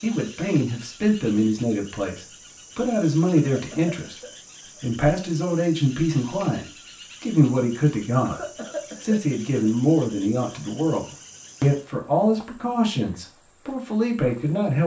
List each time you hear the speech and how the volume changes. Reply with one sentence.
The speech can be heard from 0.0 to 14.8 s, at a steady volume.